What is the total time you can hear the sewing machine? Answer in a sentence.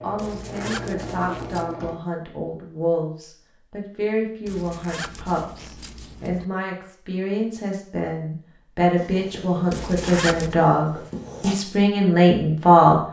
You can hear the sewing machine for 2 seconds altogether.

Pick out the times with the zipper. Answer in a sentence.
You can hear the zipper from 0.1 to 1.8 s, from 4.5 to 6.5 s and from 9.7 to 10.6 s.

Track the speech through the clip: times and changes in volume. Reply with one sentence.
You can hear the speech from 0.0 to 13.0 s, getting louder.